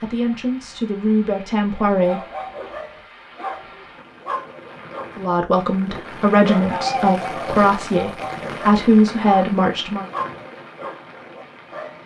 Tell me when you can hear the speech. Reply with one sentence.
The speech can be heard from 0.0 to 2.2 s and from 5.2 to 10.1 s.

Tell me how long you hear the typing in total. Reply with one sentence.
The typing can't be heard in this clip.